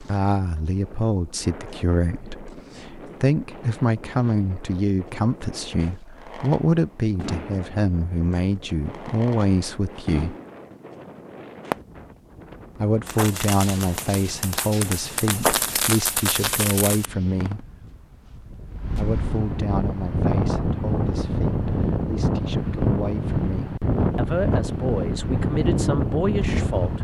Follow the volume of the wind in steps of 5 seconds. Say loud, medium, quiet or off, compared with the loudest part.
quiet, quiet, quiet, medium, loud, loud.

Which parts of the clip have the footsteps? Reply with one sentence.
You can't hear the footsteps here.